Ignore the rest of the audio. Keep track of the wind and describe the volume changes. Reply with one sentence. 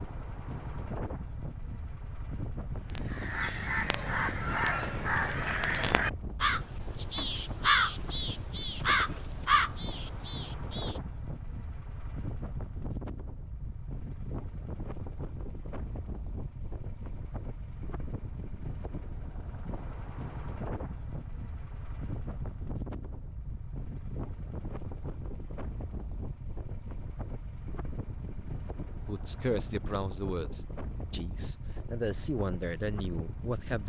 The loudness of the wind stays about the same.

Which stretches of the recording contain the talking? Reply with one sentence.
You can hear the talking from 28.9 to 33.8 s.